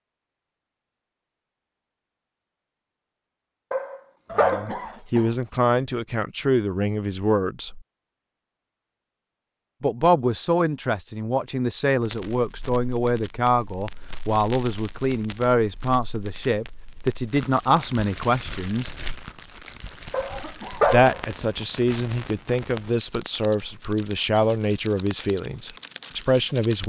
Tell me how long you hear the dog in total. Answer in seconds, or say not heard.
2 s.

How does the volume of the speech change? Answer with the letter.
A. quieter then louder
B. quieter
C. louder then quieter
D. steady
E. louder
D.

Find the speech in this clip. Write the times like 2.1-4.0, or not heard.
4.3-7.8, 9.8-18.9, 20.9-26.8.